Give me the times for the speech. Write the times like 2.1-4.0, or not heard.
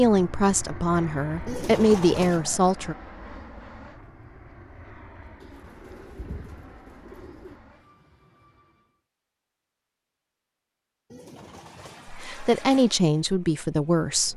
0.0-3.0, 12.1-14.3.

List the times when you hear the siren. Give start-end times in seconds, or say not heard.
not heard.